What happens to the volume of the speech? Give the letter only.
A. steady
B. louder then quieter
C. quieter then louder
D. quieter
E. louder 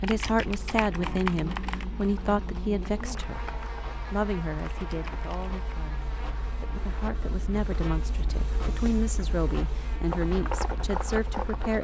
C.